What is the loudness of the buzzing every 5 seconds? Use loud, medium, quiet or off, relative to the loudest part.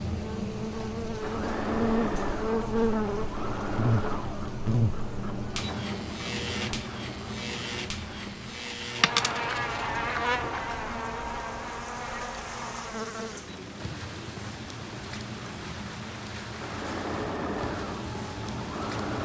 loud, medium, loud, off.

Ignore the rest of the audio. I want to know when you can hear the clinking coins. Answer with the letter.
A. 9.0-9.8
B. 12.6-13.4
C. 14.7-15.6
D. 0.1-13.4
A.